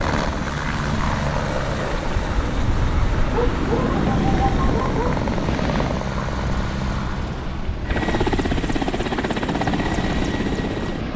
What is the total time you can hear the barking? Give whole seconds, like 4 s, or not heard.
2 s.